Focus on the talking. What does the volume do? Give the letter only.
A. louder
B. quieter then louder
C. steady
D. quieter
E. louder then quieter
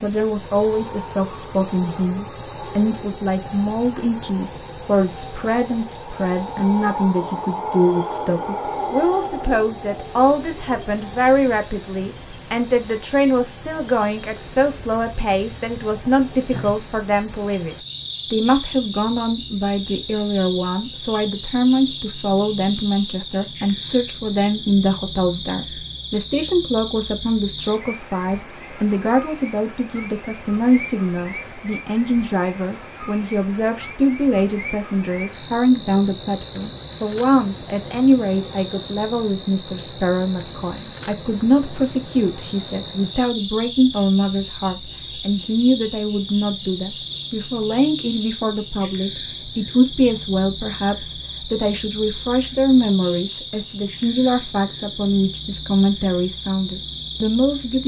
C.